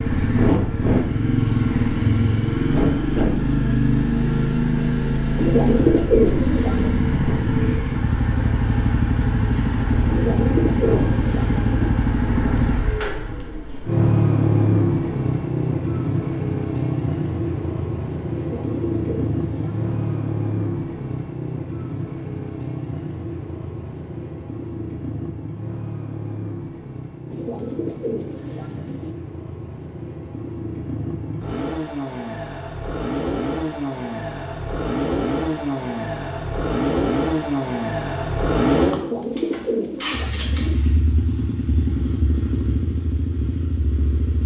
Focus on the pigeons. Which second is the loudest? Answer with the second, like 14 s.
6 s.